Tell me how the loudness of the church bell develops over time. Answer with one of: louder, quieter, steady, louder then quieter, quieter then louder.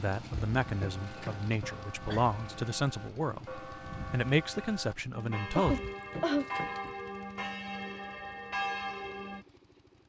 louder.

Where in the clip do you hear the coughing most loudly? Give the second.
6 s.